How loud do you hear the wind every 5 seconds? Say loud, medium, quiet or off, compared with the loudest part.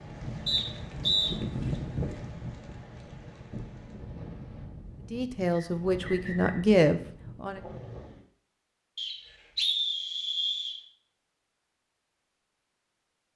loud, medium, off.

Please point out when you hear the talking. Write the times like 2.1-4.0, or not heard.
5.1-7.6.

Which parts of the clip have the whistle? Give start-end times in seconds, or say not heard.
0.5-1.3, 5.5-6.7, 8.9-10.8.